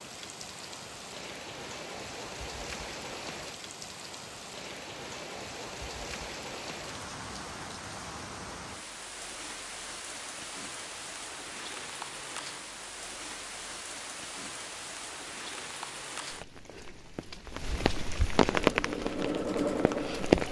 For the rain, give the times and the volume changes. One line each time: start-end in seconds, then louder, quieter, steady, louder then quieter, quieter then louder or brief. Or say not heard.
0.0-20.4 louder.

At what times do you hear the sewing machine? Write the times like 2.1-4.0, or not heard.
18.5-20.4.